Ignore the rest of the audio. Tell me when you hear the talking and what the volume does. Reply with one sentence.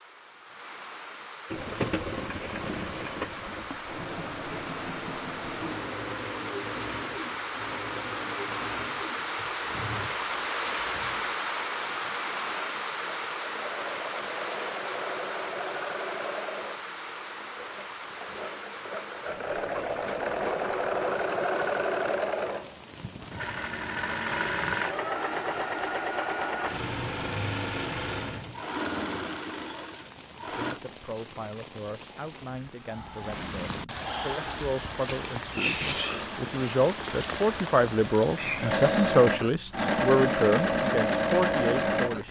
You can hear the talking from 30.5 to 42.2 s, getting louder.